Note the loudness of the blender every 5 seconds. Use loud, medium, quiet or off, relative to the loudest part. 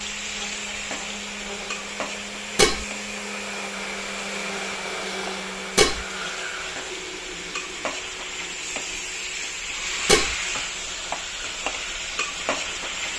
loud, loud, medium.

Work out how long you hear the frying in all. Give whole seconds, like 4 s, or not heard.
13 s.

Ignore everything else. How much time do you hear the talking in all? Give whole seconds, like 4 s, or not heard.
not heard.